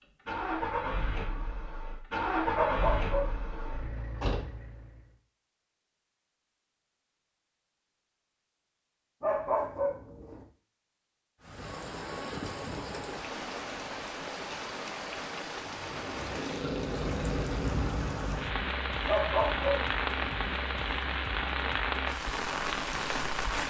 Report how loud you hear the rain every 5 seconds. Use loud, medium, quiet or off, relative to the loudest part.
off, off, medium, loud, loud.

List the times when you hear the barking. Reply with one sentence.
You can hear the barking from 2.5 to 3.8 s, from 9.2 to 10.4 s and from 19.1 to 20.2 s.